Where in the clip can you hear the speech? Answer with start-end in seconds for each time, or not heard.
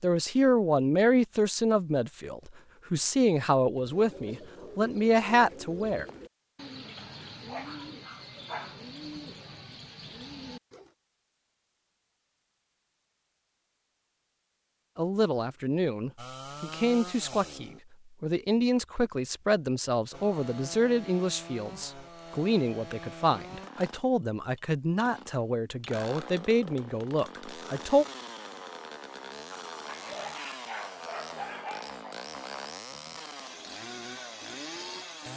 0.0-6.0, 14.9-28.1.